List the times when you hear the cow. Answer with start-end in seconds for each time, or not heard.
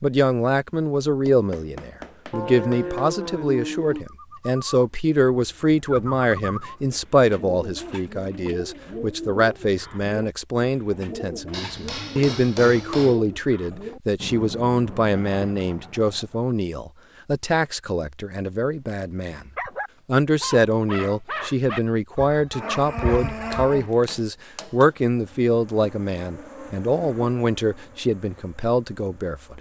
2.3-4.0, 22.5-24.1.